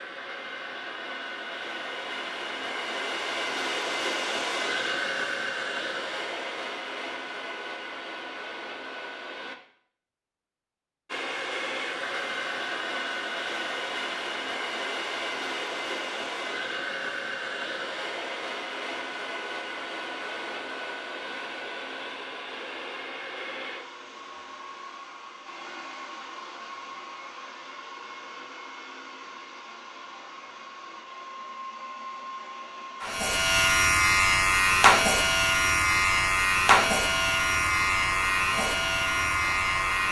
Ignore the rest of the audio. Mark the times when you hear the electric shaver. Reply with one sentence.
The electric shaver can be heard from 33.0 to 40.0 s.